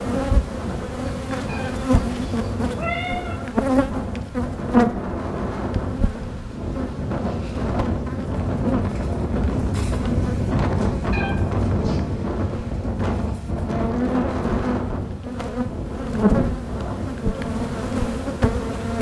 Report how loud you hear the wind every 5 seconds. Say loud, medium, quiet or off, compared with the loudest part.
medium, loud, loud, medium.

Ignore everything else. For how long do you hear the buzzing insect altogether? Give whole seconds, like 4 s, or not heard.
19 s.